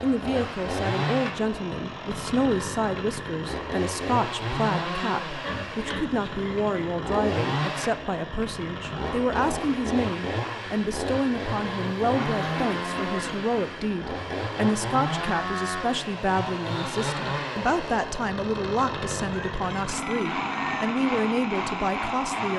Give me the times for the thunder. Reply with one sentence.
The thunder can't be heard in this clip.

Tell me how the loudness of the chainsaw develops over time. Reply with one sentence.
The loudness of the chainsaw stays about the same.